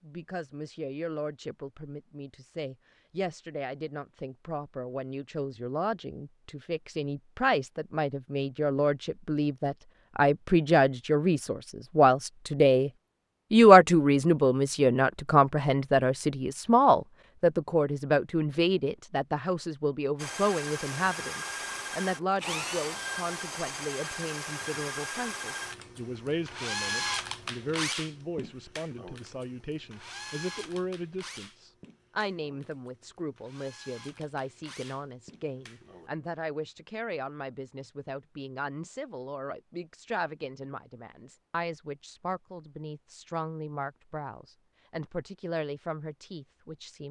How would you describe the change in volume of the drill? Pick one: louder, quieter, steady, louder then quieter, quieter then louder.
quieter.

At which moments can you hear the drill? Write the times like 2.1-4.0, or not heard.
20.1-36.1.